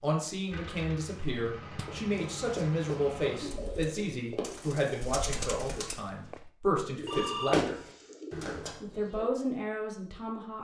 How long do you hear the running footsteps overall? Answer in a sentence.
The running footsteps can be heard for 4 seconds in total.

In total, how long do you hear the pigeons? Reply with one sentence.
The pigeons can be heard for 6 seconds in total.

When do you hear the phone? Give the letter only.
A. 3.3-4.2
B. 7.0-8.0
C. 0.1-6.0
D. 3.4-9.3
B.